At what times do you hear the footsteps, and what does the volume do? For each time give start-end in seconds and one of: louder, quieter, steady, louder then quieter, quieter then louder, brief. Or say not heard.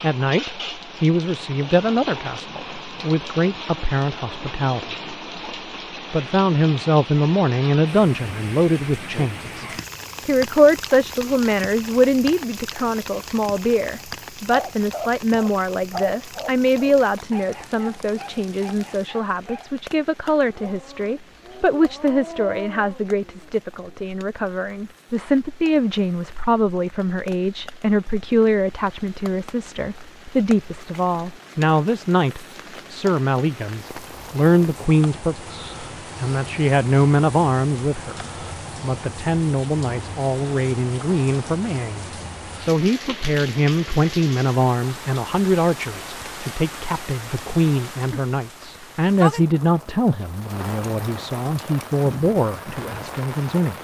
not heard.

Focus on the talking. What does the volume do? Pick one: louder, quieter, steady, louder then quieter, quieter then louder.
steady.